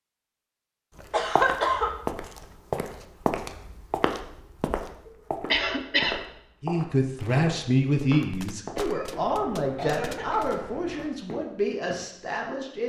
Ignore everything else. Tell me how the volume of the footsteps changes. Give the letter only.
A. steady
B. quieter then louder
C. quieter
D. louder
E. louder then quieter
C.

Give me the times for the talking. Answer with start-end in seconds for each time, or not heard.
6.6-12.8.